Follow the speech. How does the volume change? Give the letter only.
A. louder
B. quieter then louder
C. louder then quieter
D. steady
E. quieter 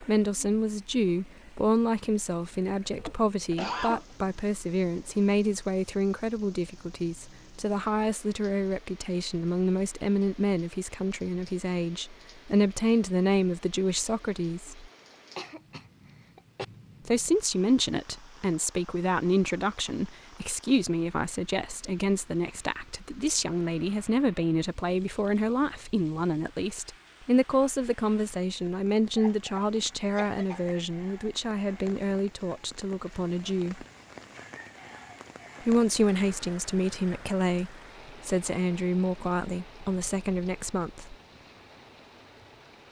D.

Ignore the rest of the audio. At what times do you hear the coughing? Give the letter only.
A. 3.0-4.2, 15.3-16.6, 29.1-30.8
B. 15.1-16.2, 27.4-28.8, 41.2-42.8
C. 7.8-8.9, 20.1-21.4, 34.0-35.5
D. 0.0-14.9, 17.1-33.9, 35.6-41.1
A.